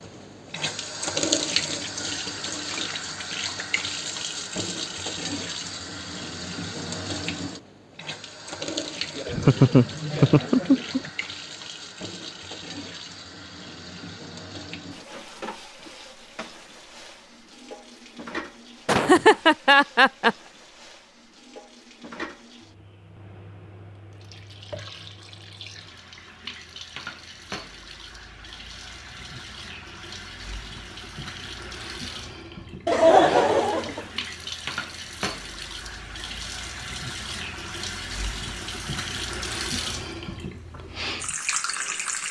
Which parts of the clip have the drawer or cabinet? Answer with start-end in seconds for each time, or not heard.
not heard.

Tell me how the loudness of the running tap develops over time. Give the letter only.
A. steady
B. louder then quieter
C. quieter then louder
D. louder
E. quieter
C.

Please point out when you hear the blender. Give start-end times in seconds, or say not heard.
not heard.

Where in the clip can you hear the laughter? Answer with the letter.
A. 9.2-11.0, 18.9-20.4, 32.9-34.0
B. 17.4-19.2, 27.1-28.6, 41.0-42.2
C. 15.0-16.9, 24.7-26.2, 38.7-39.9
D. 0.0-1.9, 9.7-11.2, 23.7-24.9
A.